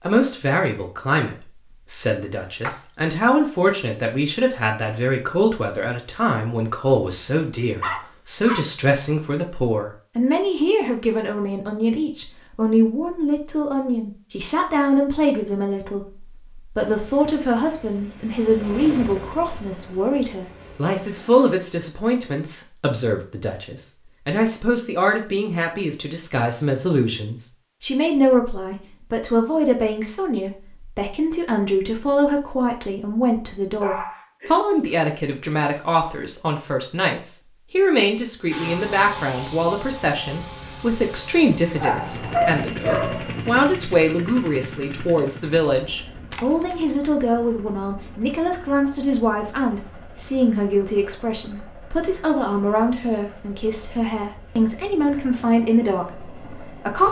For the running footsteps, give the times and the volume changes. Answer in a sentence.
You can't hear the running footsteps here.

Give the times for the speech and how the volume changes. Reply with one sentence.
The speech can be heard from 0.0 to 57.0 s, at a steady volume.